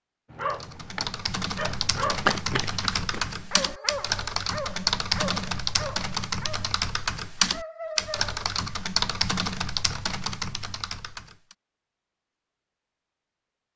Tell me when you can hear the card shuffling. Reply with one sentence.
You can hear the card shuffling from 2.0 to 3.6 s.